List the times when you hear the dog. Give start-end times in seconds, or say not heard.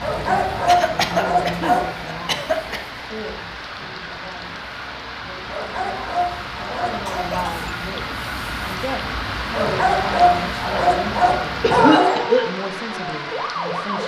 0.0-2.0, 5.5-7.3, 9.5-12.2.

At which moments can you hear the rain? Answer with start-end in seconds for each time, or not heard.
0.0-14.0.